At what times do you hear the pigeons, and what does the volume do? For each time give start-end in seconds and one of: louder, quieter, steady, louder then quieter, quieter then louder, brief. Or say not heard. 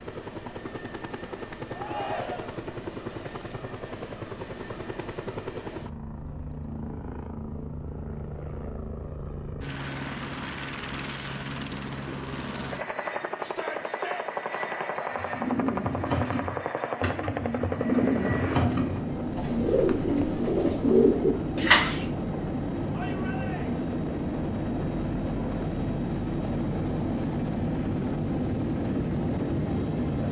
15.1-22.1 louder.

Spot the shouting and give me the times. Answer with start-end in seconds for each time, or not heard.
1.7-2.6, 13.4-14.2, 22.9-23.8.